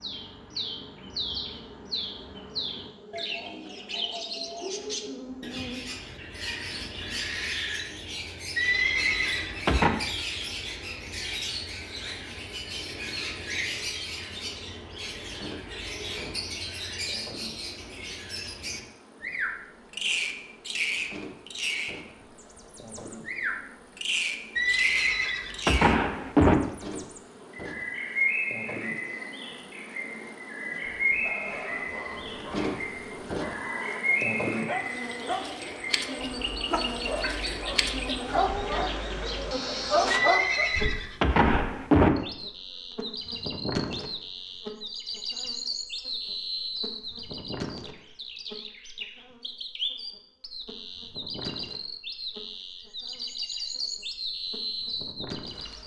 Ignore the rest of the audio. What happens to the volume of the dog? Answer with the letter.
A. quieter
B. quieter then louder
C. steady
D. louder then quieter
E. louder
E.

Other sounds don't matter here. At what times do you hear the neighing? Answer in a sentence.
You can hear the neighing from 8.6 to 9.9 s, from 24.6 to 26.6 s and from 40.1 to 42.1 s.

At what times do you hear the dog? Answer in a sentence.
The dog can be heard from 31.1 to 40.7 s.